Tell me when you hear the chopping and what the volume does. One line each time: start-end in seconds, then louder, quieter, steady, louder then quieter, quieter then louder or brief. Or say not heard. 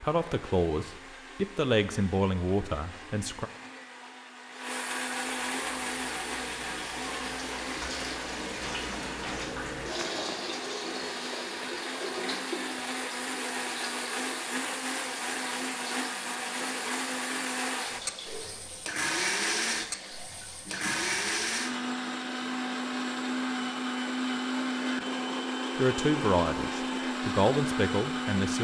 not heard.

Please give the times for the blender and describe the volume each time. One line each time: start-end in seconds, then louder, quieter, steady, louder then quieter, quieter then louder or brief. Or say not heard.
0.0-28.5 louder.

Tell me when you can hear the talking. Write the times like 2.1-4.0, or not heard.
0.0-3.5, 25.8-28.5.